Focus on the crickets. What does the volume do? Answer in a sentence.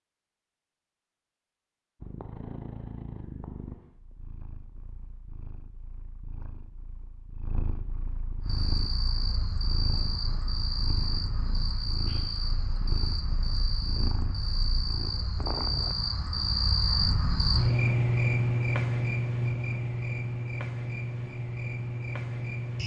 The loudness of the crickets goes up, then down.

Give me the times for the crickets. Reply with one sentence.
The crickets can be heard from 8.4 to 22.8 s.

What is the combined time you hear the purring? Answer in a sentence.
You can hear the purring for 14 seconds altogether.